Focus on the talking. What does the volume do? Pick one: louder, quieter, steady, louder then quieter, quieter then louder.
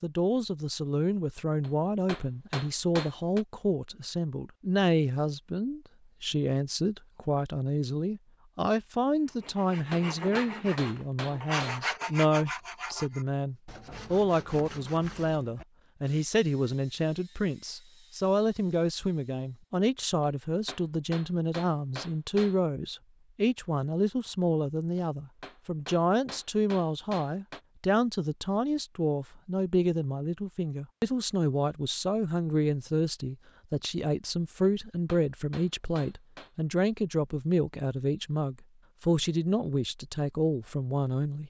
steady.